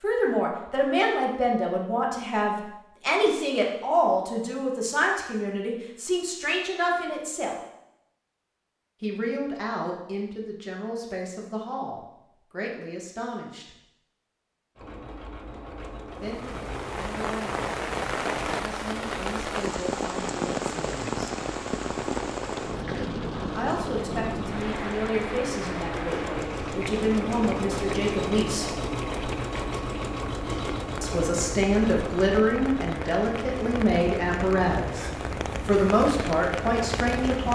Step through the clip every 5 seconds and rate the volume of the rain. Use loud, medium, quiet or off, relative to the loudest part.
off, off, off, loud, loud, medium, medium, loud.